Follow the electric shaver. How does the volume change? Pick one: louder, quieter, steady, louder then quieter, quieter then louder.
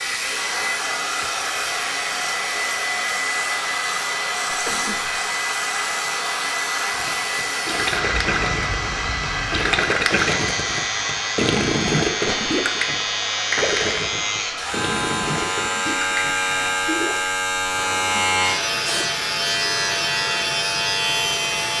louder.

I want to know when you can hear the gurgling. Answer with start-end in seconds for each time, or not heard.
6.9-17.1.